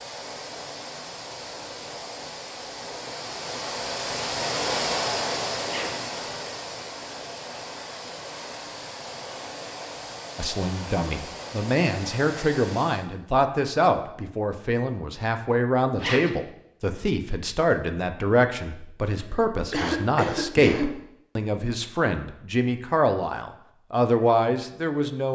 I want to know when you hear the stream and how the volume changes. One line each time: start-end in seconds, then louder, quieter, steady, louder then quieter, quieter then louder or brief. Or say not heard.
0.0-13.1 louder then quieter.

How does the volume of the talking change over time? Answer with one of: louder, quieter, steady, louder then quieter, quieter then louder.
steady.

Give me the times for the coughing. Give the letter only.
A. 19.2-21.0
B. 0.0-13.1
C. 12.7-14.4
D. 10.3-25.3
A.